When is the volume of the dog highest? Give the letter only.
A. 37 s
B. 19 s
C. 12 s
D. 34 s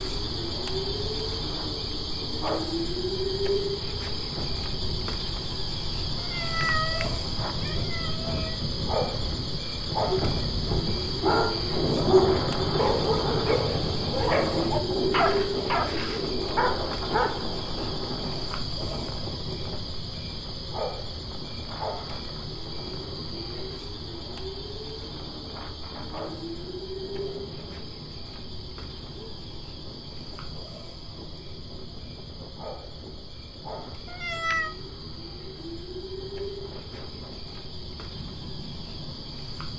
C.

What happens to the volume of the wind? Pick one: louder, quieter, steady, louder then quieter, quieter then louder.
louder then quieter.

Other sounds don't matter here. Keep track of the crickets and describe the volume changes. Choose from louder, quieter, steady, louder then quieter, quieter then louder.
quieter.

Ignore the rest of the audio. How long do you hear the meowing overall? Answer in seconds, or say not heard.
3 s.